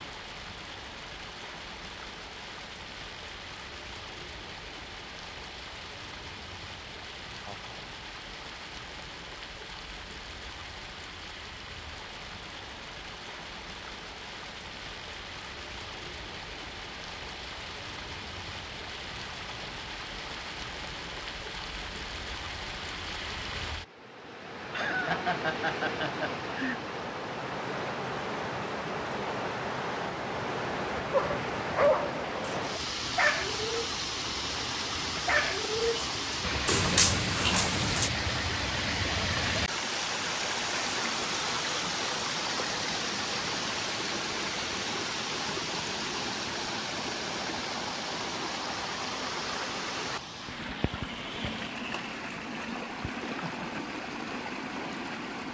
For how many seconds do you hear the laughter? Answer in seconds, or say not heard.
3 s.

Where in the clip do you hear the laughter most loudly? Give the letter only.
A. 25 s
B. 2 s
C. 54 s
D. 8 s
A.